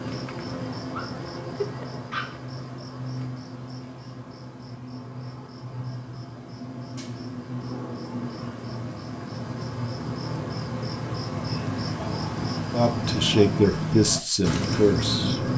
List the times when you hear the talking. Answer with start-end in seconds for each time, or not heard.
12.7-15.4.